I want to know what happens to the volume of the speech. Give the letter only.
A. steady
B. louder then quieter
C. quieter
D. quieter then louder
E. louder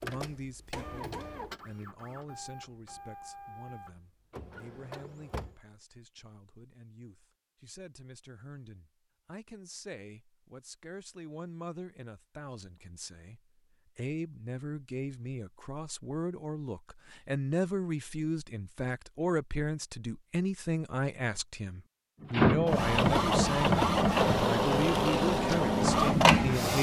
E.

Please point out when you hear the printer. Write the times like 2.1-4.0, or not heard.
0.0-5.6, 22.2-26.7.